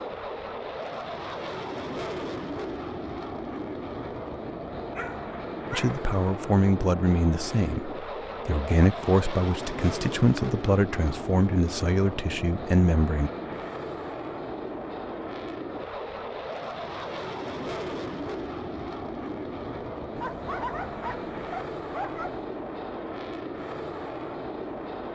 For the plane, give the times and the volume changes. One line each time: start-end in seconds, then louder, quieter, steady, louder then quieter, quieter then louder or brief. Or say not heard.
0.0-25.0 steady.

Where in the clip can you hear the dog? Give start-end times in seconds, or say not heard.
5.0-6.0, 20.1-22.4.